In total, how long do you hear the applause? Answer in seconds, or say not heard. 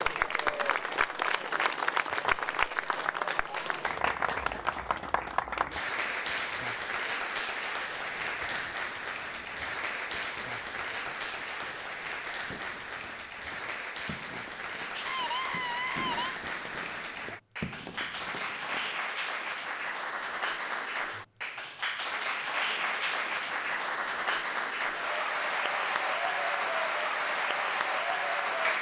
29 s.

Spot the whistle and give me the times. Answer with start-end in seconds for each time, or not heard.
not heard.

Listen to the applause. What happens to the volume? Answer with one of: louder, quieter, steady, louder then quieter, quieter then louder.
quieter then louder.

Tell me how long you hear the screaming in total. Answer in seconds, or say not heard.
2 s.